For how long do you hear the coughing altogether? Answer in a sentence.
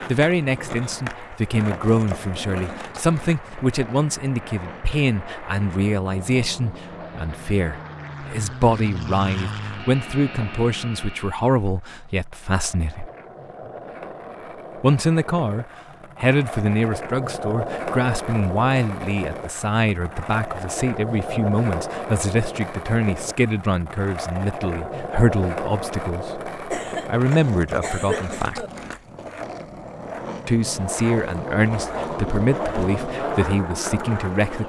The coughing can be heard for 2 seconds in total.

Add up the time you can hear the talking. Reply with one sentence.
The talking can be heard for 31 seconds in total.